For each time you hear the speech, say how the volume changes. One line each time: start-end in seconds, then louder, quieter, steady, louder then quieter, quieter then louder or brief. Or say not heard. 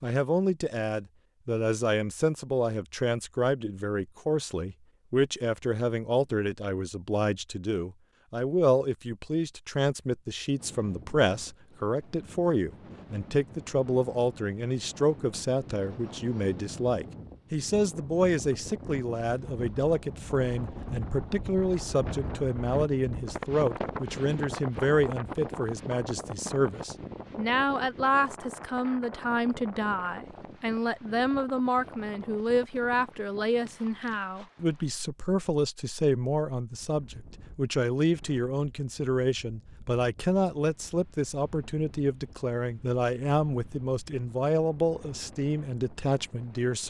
0.0-46.8 steady.